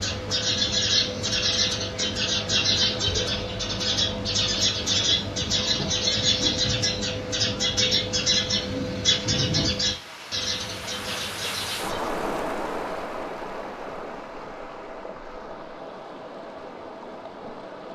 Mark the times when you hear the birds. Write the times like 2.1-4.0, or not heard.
0.0-12.1.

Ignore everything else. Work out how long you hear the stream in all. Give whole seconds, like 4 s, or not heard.
18 s.